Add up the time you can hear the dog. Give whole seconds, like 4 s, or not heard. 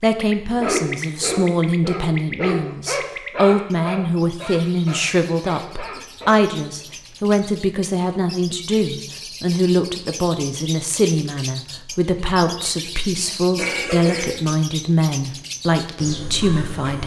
6 s.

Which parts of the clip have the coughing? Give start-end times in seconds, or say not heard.
13.2-14.5.